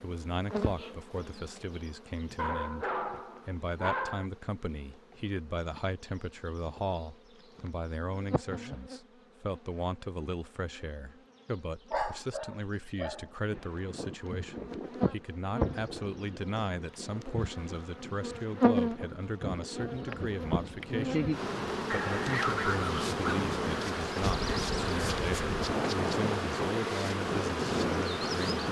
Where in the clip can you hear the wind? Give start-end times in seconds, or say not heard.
13.5-28.6.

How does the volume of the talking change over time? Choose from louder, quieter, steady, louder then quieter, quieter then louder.
steady.